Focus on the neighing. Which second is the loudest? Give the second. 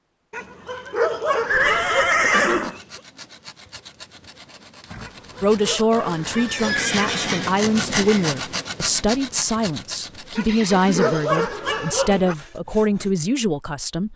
2 s.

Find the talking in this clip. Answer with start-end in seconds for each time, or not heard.
5.4-14.1.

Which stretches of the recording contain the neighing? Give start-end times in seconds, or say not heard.
1.4-2.8, 4.9-7.5, 10.4-11.3.